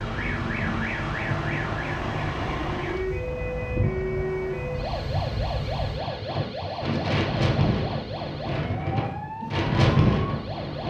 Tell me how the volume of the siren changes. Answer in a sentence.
The loudness of the siren goes down.